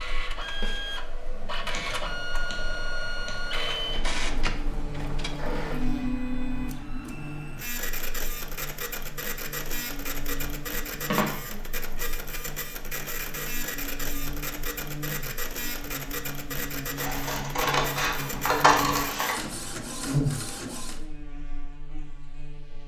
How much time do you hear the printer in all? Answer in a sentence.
The printer can be heard for 21 seconds in total.